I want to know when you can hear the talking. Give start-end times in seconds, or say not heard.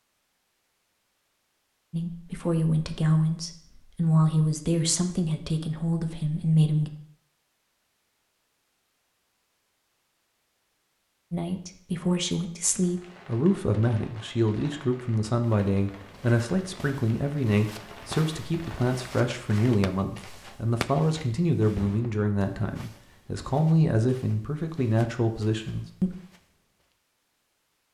1.9-6.9, 11.3-26.1.